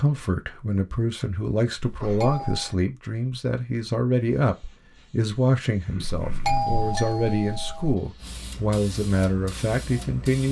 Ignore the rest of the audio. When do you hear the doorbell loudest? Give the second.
7 s.